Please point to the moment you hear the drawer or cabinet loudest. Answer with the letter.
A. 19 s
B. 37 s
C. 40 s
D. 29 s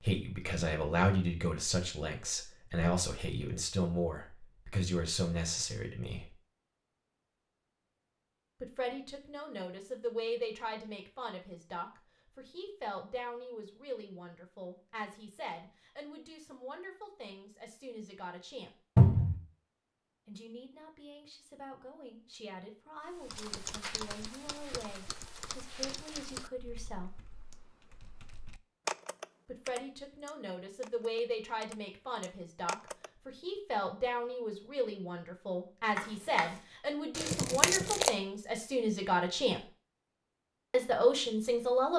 A.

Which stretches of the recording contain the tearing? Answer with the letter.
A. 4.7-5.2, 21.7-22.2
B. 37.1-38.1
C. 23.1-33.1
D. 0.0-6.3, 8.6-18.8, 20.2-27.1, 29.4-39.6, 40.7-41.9
B.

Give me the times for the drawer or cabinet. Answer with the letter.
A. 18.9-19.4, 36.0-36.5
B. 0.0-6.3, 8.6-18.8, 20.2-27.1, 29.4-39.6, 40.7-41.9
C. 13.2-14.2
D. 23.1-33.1
A.